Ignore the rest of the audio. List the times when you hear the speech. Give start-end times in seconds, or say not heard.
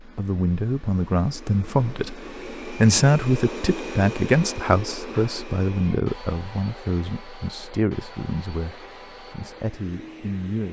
0.0-10.6.